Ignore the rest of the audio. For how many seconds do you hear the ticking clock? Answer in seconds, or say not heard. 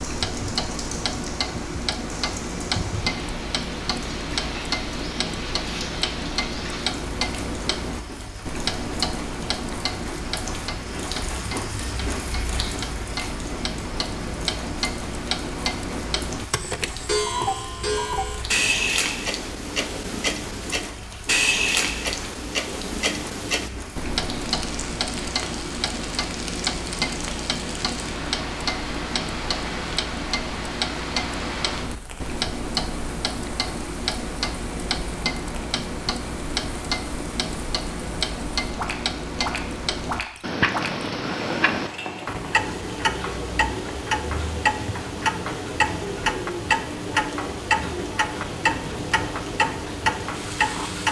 51 s.